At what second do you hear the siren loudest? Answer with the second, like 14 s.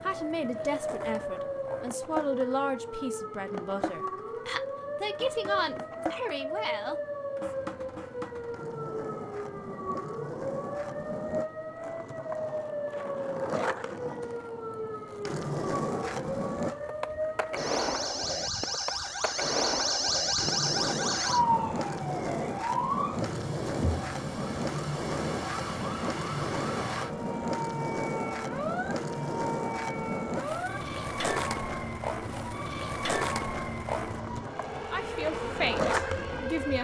21 s.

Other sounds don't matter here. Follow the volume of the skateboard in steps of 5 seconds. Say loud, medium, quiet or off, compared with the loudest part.
medium, medium, medium, loud, loud, loud, loud, loud.